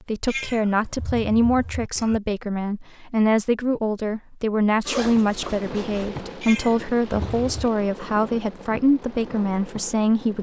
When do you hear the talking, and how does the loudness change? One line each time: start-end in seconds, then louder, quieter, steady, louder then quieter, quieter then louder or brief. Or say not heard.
0.1-10.3 steady.